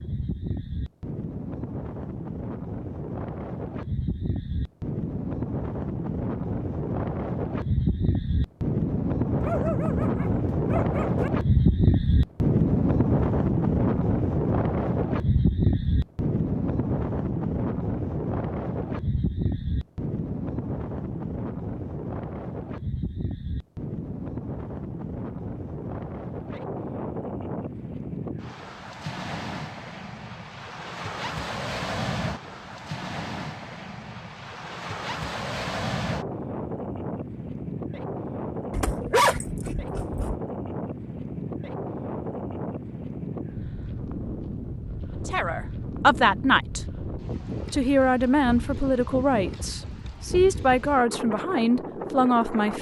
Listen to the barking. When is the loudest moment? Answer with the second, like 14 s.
39 s.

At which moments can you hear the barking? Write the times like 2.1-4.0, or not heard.
9.4-11.3, 38.7-40.4.